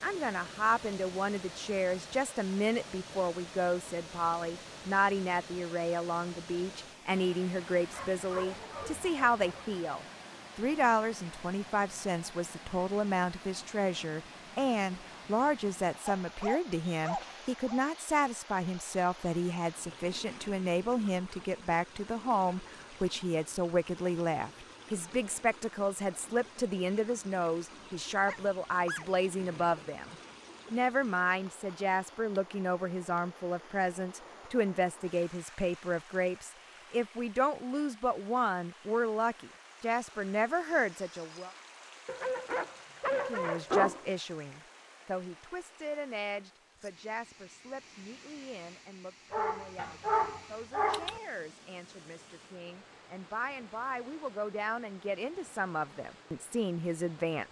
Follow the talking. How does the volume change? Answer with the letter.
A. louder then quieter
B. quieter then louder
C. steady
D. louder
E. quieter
E.